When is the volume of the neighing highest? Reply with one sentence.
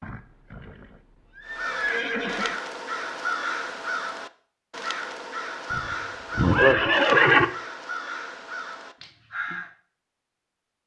The volume of the neighing peaks at 7 seconds.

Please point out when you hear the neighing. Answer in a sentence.
You can hear the neighing from 0.0 to 2.6 s and from 5.7 to 7.5 s.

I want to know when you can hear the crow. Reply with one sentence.
The crow can be heard from 1.4 to 9.8 s.